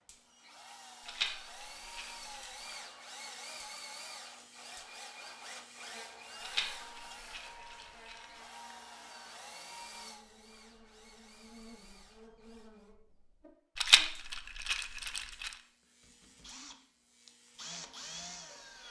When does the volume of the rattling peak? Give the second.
14 s.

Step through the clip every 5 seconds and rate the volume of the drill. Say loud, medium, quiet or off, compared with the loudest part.
loud, loud, medium, loud.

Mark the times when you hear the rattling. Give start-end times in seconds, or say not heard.
1.1-2.5, 6.4-8.2, 13.8-15.5.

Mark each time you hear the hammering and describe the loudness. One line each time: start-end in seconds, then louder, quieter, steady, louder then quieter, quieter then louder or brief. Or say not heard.
not heard.